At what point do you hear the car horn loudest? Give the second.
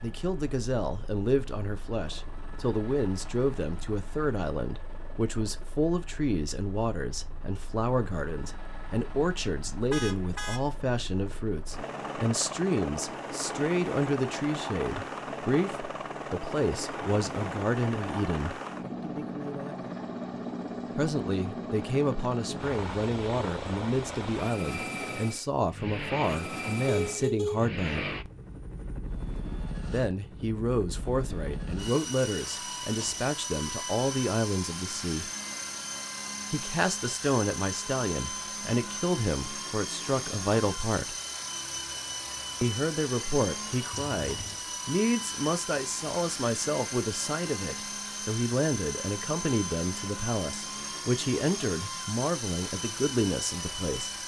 27 s.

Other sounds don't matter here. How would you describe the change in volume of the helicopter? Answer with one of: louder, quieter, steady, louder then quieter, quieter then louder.
louder.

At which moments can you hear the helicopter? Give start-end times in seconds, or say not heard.
0.0-54.2.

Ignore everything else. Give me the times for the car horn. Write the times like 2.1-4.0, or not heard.
9.9-10.6, 26.9-27.7, 43.9-44.6.